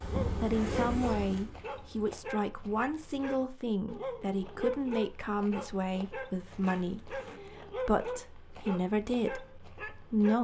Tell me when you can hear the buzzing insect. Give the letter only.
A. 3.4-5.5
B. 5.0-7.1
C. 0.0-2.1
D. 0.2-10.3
C.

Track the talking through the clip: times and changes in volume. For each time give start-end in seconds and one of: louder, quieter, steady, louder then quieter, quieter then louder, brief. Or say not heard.
0.2-10.3 steady.